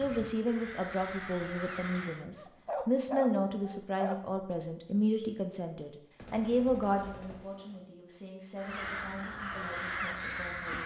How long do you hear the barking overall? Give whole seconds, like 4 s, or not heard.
2 s.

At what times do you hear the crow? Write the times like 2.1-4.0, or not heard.
0.0-2.2, 8.6-10.8.